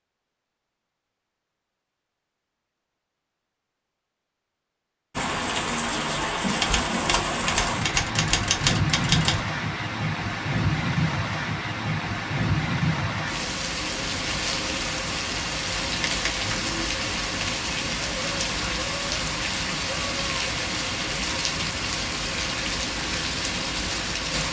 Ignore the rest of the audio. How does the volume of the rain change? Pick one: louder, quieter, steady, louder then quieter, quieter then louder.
steady.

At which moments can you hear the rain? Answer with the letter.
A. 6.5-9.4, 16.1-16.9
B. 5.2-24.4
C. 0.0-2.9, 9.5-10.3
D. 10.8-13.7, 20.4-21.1
B.